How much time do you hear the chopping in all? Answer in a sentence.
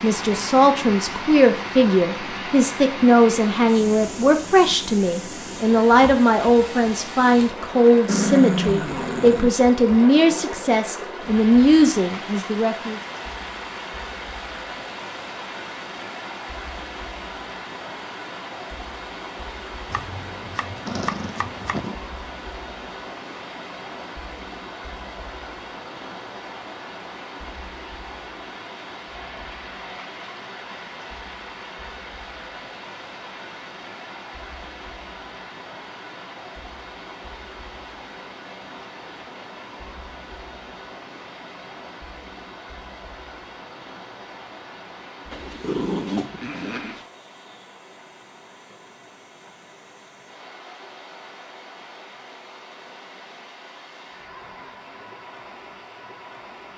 The chopping can be heard for 2 seconds in total.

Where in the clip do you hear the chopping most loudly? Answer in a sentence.
The loudest moment of the chopping is at 21 seconds.